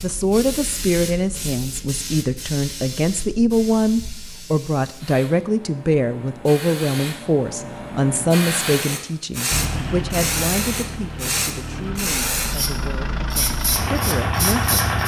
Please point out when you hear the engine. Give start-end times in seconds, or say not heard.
9.5-15.0.